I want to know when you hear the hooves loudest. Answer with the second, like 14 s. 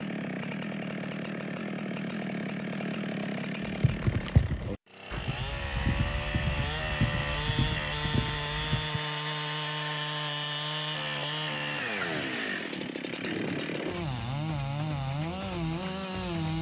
4 s.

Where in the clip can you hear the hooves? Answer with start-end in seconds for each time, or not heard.
3.8-9.0.